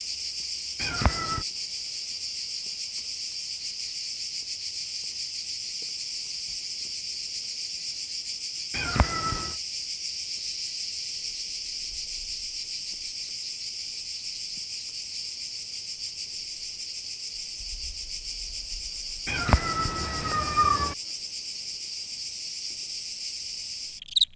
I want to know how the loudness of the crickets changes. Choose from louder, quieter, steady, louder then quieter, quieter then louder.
steady.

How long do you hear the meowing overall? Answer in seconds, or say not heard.
3 s.